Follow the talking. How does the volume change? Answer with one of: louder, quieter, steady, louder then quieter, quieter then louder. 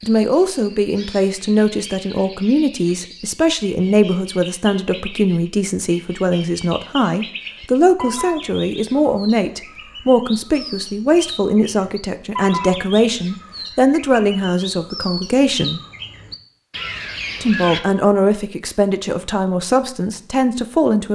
steady.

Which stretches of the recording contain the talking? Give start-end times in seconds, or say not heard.
0.0-15.8, 17.4-21.0.